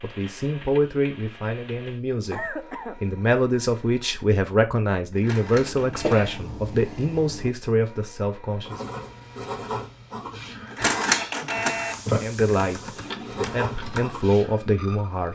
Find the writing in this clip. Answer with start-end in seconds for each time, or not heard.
8.7-14.6.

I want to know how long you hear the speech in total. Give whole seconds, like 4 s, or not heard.
12 s.